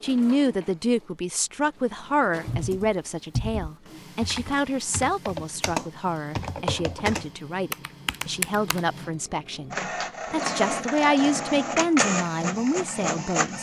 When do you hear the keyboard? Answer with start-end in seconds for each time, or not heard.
2.5-8.9.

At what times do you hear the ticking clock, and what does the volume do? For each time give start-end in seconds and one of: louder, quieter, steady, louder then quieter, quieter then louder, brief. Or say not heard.
not heard.